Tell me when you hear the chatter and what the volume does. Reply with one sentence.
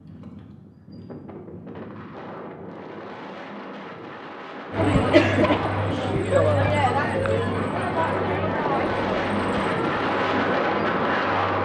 You can hear the chatter from 4.7 to 11.6 s, getting quieter.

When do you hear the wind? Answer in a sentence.
You can hear the wind from 0.0 to 11.6 s.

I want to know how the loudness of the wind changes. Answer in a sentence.
The loudness of the wind goes up.